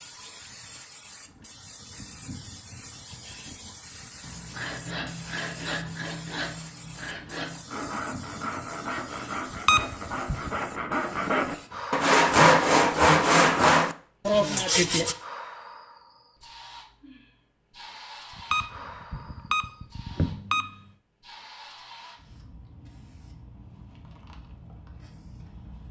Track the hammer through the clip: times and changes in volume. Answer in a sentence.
You can't hear the hammer here.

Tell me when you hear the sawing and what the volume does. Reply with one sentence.
The sawing can be heard from 4.2 to 15.2 s, getting louder.